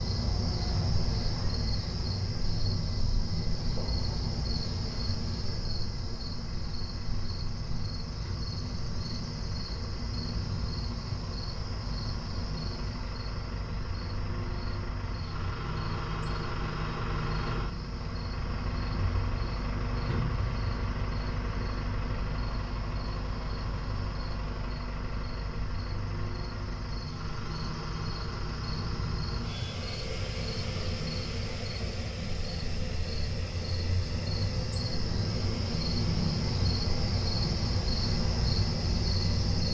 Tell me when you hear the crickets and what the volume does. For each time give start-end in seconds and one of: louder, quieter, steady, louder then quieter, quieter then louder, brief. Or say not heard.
0.0-39.6 quieter then louder.